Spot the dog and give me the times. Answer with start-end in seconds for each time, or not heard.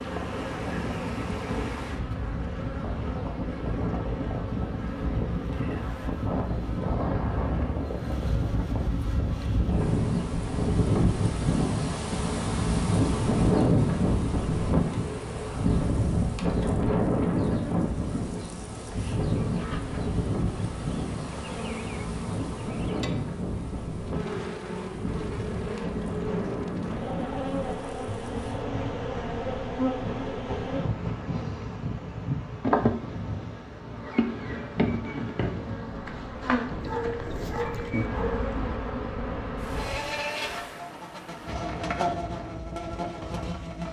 36.8-38.5.